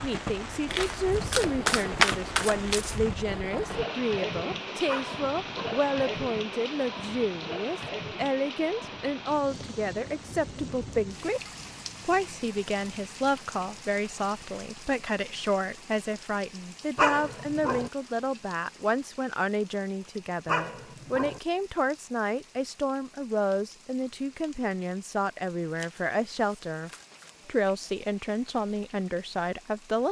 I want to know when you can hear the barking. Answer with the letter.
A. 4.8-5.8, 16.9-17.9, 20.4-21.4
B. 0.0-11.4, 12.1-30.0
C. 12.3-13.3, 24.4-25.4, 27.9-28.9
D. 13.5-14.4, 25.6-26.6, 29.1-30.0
A.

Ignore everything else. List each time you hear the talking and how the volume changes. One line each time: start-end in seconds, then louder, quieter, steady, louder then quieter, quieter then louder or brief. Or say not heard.
0.0-11.4 steady
12.1-30.0 steady.